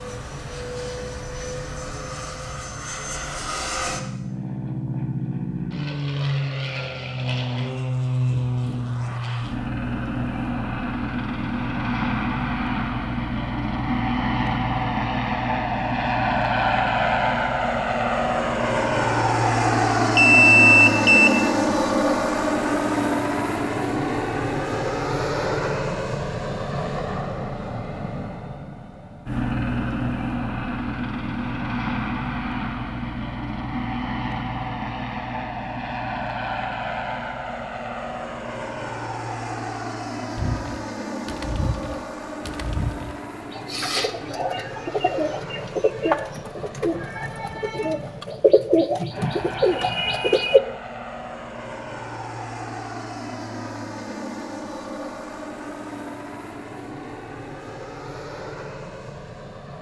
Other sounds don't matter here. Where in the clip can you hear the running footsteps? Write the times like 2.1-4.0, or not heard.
not heard.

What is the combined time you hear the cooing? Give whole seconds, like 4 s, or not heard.
10 s.